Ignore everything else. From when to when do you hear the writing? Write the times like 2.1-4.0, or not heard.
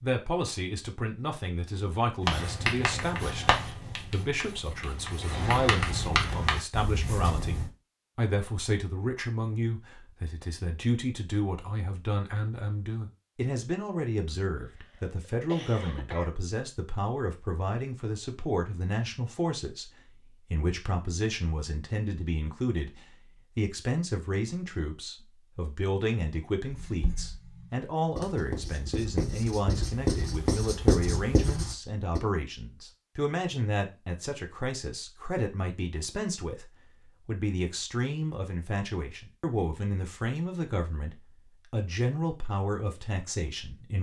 2.2-7.7, 26.7-32.2.